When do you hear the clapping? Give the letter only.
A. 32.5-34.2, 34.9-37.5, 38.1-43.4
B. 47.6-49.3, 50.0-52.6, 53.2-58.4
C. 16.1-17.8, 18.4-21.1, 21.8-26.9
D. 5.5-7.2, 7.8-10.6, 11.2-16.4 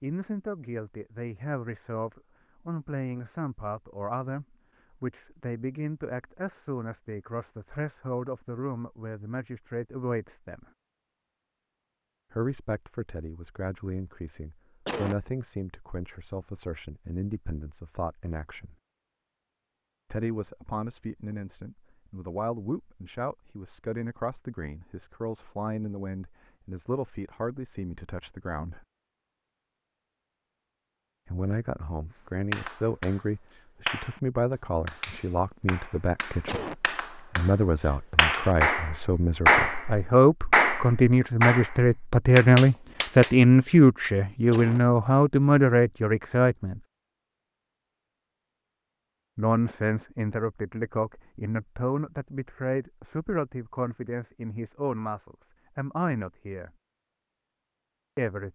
A.